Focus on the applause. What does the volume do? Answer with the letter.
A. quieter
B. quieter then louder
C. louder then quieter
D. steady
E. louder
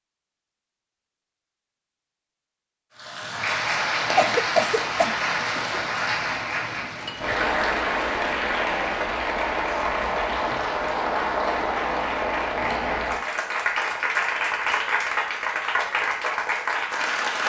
D.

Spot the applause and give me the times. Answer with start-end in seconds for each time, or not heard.
3.0-17.4.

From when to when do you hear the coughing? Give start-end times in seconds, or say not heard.
4.2-5.8.